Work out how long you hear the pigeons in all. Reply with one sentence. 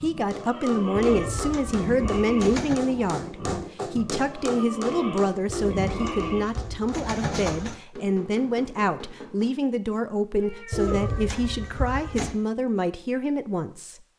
You can hear the pigeons for 6 seconds altogether.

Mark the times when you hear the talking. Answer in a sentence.
The talking can be heard from 0.0 to 14.0 s.